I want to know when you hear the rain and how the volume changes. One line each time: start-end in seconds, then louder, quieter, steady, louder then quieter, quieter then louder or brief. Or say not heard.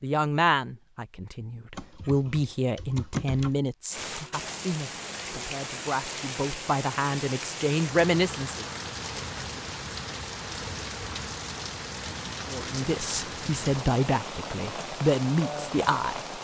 3.9-16.3 steady.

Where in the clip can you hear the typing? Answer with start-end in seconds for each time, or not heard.
1.7-3.6.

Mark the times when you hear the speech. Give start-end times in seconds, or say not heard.
0.0-8.7, 12.4-16.2.